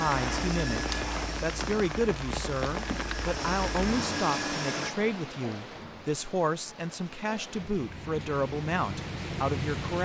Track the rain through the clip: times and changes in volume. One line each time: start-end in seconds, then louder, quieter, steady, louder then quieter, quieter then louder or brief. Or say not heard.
0.0-10.0 quieter then louder.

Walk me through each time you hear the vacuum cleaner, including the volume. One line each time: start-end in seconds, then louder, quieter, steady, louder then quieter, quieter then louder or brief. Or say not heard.
0.0-4.9 quieter then louder.